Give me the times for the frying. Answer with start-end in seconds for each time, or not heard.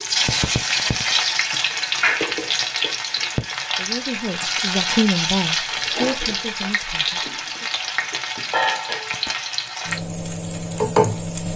0.0-11.5.